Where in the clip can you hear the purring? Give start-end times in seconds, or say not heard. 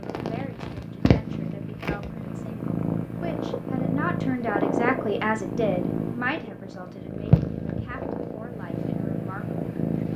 0.0-10.1.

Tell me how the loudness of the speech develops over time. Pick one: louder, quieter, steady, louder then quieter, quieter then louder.
louder then quieter.